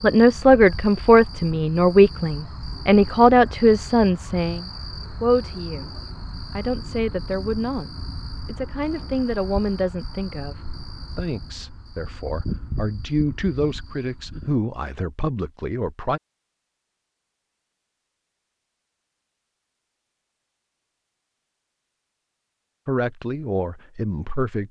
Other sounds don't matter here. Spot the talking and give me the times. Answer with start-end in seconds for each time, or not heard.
0.0-5.9, 6.5-10.6, 11.2-16.2, 22.9-24.6.